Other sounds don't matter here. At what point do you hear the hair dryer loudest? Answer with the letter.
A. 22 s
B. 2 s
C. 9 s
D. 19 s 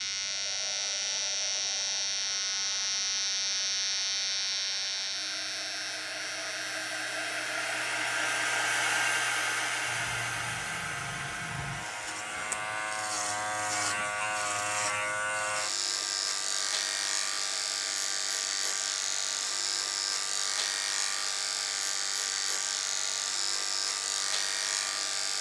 C.